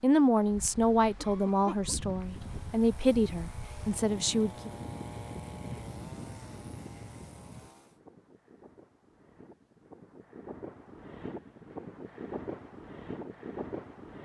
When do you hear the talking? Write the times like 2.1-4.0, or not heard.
0.0-4.7.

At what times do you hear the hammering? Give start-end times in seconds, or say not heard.
not heard.